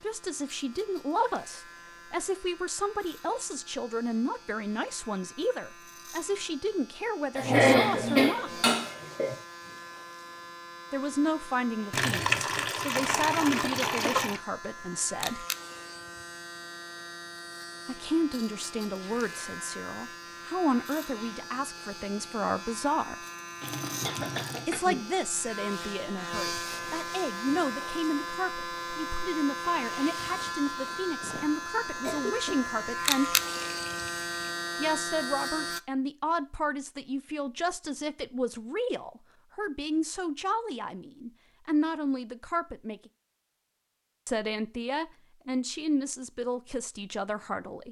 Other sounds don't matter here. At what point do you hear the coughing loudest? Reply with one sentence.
The loudest moment of the coughing is at 8 seconds.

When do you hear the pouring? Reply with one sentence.
You can hear the pouring from 11.9 to 14.4 s, from 23.6 to 24.7 s and from 33.6 to 34.3 s.